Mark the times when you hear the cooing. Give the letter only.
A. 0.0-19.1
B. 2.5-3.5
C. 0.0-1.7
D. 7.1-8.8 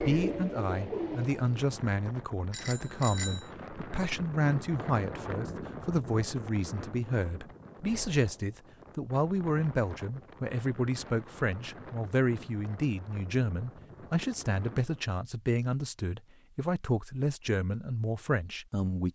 C.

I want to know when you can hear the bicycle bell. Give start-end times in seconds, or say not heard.
2.5-3.5.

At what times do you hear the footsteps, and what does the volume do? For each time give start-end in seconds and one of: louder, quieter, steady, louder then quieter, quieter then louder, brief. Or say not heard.
not heard.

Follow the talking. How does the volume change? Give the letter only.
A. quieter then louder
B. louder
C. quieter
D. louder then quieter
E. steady
E.